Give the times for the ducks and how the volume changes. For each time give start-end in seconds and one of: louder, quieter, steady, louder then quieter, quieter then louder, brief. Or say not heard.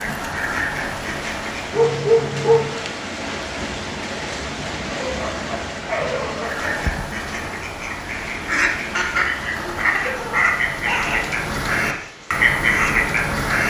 0.0-1.9 brief
6.3-13.6 louder.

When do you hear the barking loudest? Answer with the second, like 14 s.
2 s.